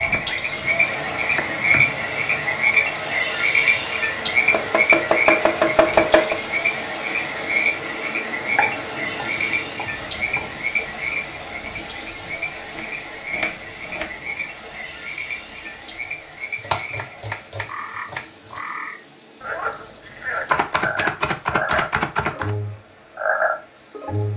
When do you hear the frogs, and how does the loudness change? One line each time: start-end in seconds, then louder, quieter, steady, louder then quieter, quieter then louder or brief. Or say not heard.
0.0-24.3 quieter then louder.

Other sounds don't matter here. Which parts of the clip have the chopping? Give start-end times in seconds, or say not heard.
0.1-2.0, 4.5-6.4, 8.6-10.5, 12.2-14.1, 16.6-18.6, 20.4-22.5.